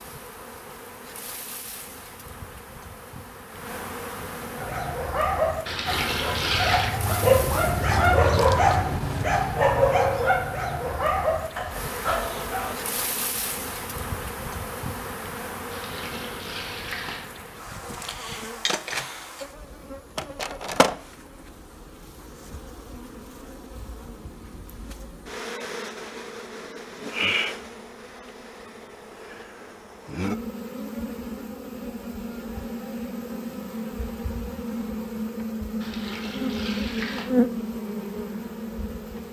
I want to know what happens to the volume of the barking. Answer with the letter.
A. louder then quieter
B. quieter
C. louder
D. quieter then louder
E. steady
A.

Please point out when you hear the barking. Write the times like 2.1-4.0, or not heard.
4.5-12.8.